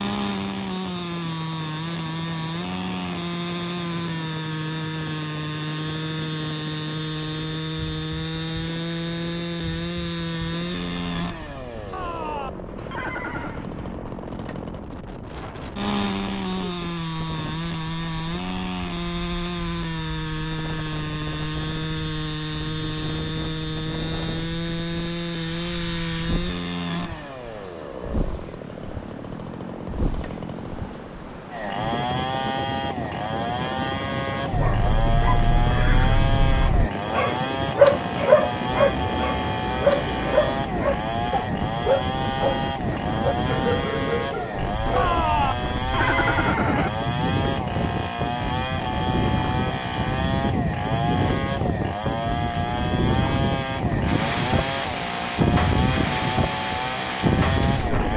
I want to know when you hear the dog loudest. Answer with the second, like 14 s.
38 s.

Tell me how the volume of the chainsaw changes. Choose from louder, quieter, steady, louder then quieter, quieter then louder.
steady.